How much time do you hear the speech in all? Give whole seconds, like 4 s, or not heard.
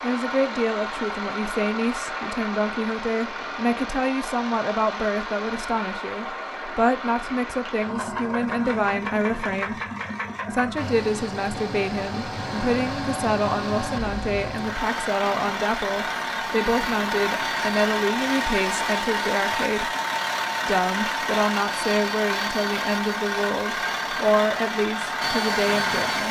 25 s.